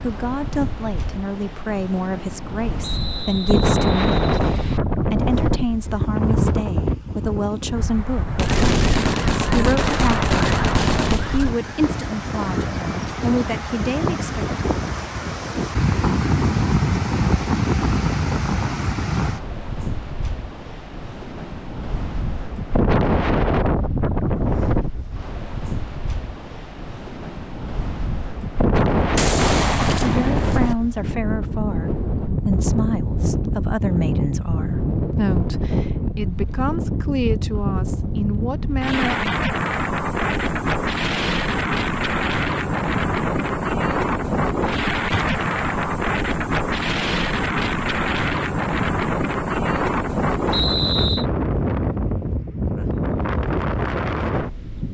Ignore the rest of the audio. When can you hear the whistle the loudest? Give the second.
51 s.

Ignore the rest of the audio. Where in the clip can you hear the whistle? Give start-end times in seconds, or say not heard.
2.8-4.8, 50.5-51.2.